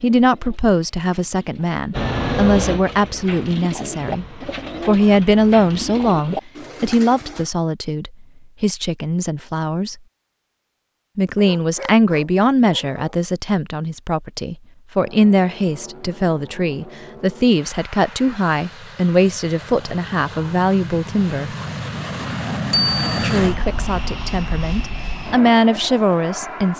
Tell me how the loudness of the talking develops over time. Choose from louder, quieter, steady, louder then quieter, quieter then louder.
steady.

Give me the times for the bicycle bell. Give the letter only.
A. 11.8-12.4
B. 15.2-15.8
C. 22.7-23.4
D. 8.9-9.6
C.